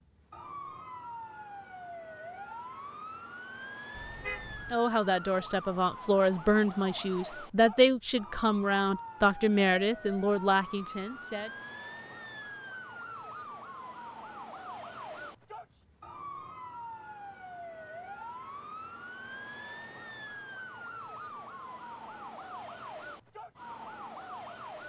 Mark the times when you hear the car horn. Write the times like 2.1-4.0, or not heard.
3.9-4.8.